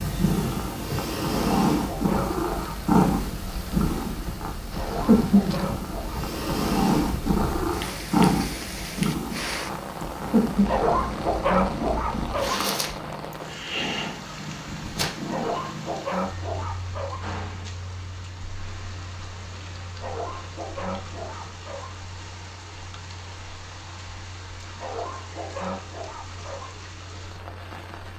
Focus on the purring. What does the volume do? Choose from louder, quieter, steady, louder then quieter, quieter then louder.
quieter.